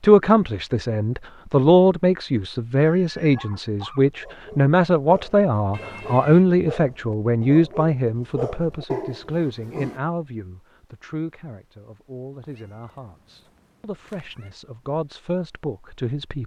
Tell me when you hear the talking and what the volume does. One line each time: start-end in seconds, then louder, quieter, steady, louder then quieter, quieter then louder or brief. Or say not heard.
0.0-16.4 quieter.